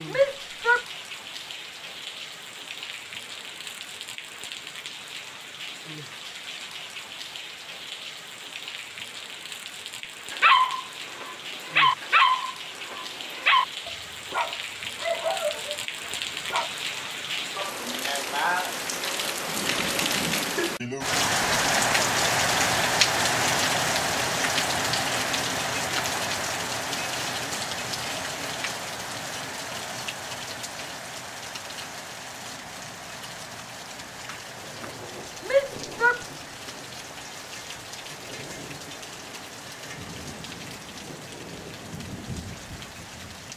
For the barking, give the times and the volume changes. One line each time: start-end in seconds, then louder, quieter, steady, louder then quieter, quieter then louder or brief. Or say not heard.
10.3-16.7 louder then quieter.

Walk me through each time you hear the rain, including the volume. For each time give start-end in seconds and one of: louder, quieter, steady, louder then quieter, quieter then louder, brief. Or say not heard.
0.0-43.5 louder then quieter.